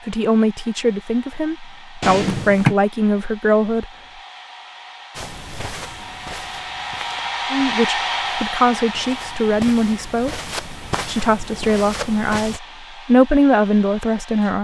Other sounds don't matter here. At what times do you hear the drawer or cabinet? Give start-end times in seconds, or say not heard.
2.0-2.8.